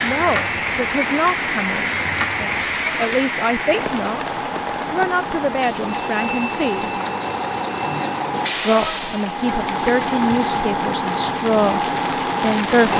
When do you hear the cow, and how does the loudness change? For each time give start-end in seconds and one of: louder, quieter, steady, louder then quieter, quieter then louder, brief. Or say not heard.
not heard.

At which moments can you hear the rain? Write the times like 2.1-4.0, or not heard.
0.0-12.9.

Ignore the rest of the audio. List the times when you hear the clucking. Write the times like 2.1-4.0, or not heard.
not heard.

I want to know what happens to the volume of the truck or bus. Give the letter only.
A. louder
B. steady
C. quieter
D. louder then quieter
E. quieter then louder
A.